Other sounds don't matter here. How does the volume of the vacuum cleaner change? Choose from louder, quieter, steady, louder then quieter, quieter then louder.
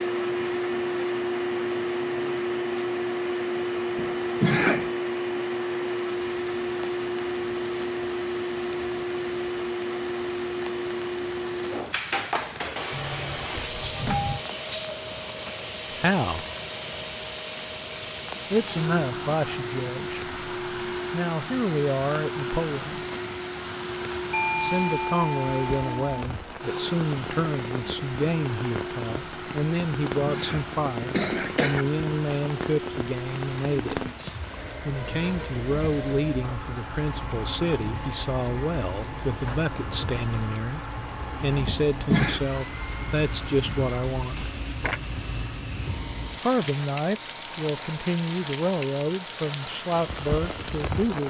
quieter.